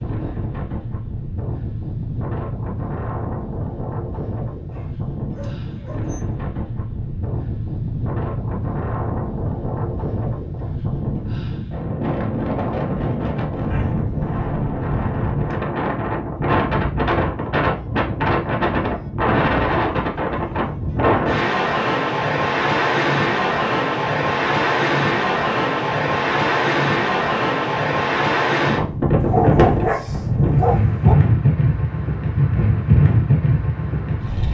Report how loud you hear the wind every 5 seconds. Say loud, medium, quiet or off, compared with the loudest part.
medium, medium, medium, loud, loud, loud, loud.